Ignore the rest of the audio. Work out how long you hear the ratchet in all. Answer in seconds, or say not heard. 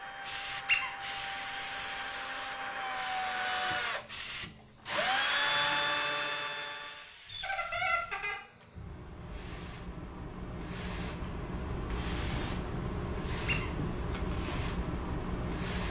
not heard.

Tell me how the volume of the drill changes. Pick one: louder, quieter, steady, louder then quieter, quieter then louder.
louder.